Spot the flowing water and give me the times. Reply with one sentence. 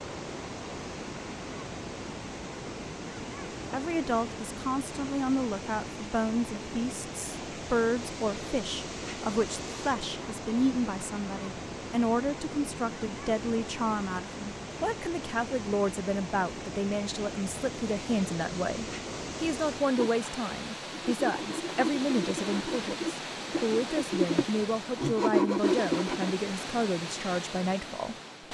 The flowing water can be heard from 0.0 to 28.4 s.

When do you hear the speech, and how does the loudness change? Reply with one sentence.
You can hear the speech from 3.7 to 28.1 s, at a steady volume.